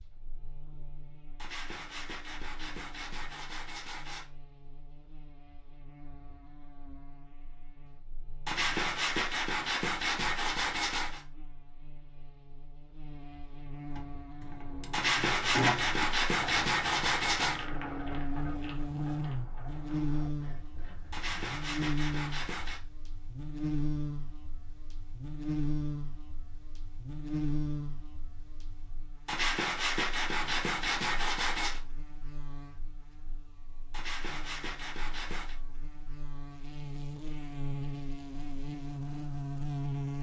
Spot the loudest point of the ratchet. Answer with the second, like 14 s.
16 s.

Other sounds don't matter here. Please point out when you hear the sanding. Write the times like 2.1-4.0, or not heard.
1.4-4.2, 8.4-11.2, 14.9-17.6, 21.1-22.8, 29.2-31.8, 33.9-35.5.